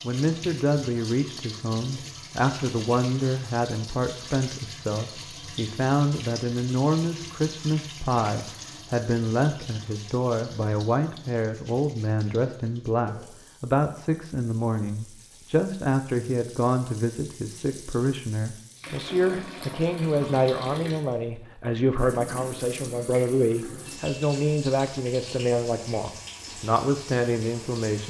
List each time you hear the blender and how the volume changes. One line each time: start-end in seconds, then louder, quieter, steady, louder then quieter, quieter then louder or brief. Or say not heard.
not heard.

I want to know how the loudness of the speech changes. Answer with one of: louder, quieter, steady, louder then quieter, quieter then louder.
steady.